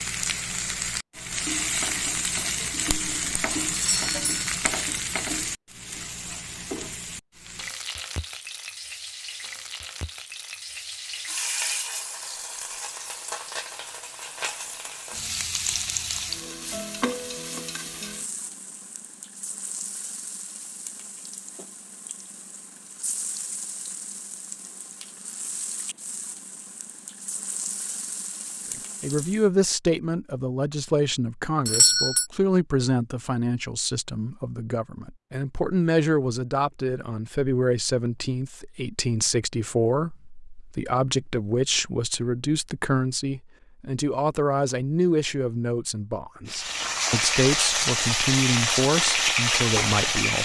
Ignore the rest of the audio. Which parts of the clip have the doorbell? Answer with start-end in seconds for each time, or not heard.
3.8-4.5, 31.6-32.2.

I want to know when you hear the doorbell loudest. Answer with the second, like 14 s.
32 s.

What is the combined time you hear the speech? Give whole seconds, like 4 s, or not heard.
21 s.